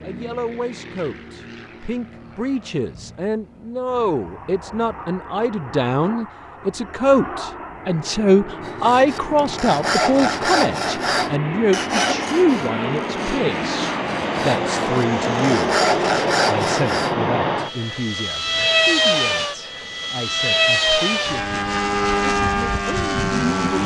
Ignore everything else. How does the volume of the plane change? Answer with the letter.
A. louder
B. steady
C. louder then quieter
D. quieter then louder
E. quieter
A.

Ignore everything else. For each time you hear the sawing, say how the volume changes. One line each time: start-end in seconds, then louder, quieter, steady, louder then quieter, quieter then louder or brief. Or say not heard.
8.7-17.1 quieter then louder.